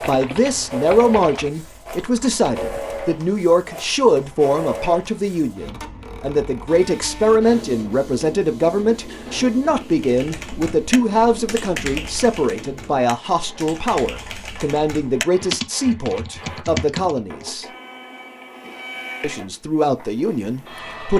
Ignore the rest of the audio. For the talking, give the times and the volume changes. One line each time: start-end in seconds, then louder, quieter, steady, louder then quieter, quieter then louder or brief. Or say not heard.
0.1-17.6 steady
19.2-21.1 brief.